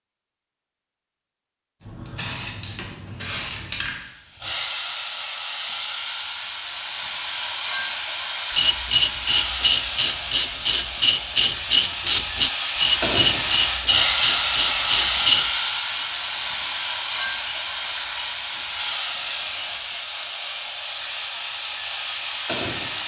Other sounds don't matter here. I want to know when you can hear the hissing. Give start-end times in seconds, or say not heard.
1.9-23.0.